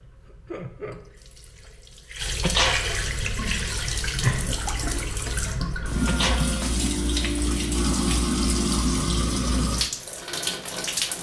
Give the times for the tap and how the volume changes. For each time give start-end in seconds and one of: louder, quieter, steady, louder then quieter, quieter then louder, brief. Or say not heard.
0.0-11.1 louder.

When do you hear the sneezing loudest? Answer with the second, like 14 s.
3 s.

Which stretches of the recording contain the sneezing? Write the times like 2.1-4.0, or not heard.
2.4-3.2, 6.0-6.9.